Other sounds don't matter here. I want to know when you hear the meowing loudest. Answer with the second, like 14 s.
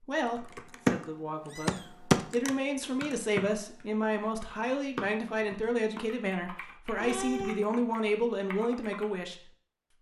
7 s.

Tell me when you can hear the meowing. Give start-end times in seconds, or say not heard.
1.4-1.9, 7.0-7.7.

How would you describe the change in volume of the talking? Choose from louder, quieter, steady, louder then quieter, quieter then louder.
louder.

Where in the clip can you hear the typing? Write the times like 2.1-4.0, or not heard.
0.2-1.1, 1.6-9.1.